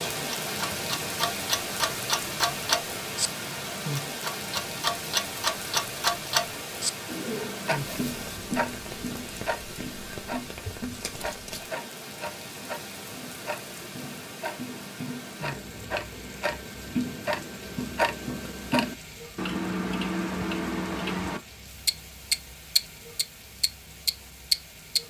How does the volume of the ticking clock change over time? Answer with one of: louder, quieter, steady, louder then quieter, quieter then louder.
quieter then louder.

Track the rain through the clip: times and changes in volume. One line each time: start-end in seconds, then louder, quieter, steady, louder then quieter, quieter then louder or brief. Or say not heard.
0.0-25.0 quieter.